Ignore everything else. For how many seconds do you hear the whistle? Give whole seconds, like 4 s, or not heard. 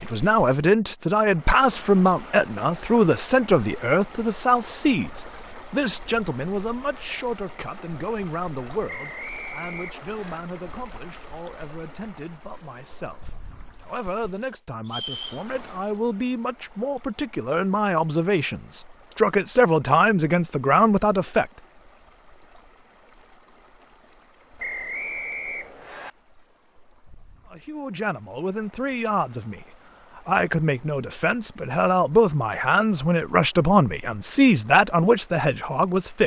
4 s.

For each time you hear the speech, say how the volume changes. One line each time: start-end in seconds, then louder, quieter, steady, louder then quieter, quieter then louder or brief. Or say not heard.
0.0-21.5 quieter then louder
27.5-36.2 louder.